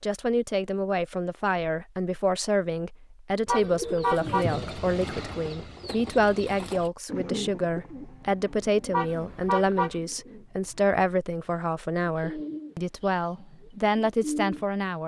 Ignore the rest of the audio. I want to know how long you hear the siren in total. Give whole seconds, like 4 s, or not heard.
not heard.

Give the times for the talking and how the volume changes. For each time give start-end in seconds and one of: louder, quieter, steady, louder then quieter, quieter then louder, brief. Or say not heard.
0.0-15.0 steady.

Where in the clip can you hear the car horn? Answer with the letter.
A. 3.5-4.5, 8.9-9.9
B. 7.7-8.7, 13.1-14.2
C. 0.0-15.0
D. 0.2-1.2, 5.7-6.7
A.